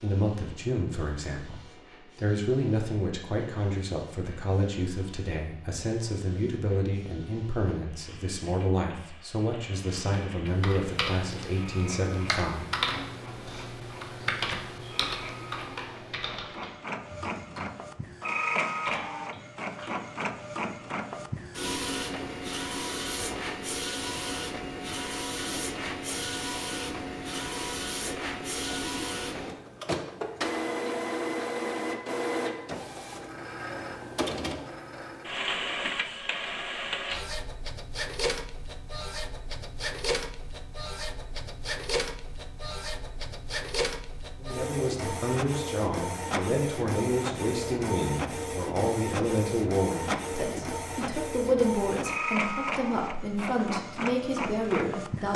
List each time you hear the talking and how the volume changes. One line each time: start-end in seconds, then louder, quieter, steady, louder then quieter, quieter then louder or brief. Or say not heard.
0.0-12.8 steady
44.4-55.3 steady.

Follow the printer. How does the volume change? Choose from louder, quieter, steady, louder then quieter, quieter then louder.
louder.